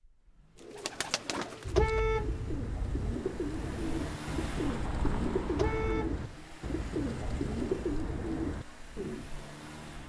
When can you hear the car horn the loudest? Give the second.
2 s.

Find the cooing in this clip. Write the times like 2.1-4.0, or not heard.
0.6-9.3.